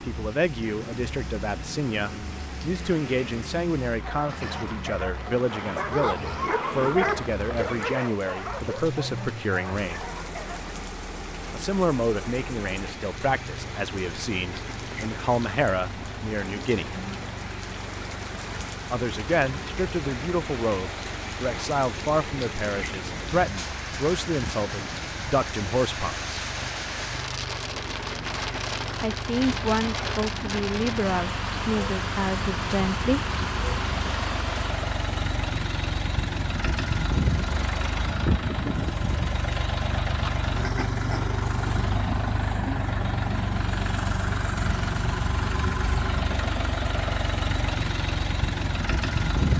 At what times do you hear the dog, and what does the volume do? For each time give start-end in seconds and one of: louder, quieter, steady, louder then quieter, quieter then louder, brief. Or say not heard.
4.0-10.7 louder then quieter.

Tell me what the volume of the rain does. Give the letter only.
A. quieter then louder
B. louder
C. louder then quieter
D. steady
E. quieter
B.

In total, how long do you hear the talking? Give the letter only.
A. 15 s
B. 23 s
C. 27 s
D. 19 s
C.